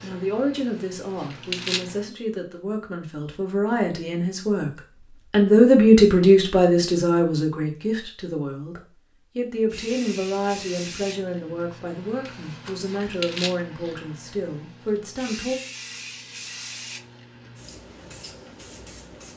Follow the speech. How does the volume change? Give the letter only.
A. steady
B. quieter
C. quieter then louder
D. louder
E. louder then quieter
E.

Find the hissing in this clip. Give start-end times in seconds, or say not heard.
0.0-2.1, 9.7-19.3.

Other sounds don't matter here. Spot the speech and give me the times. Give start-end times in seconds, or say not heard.
0.0-4.7, 5.3-15.6.